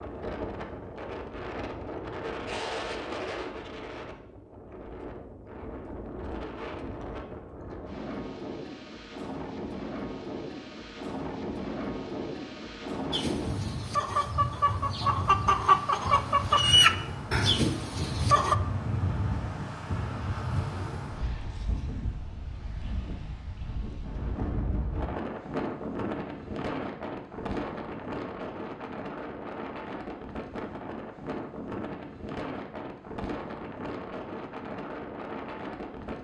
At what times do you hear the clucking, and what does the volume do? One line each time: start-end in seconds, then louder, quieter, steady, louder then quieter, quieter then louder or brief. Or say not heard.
13.1-18.6 louder then quieter.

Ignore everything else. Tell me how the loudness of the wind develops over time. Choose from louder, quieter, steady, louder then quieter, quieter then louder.
steady.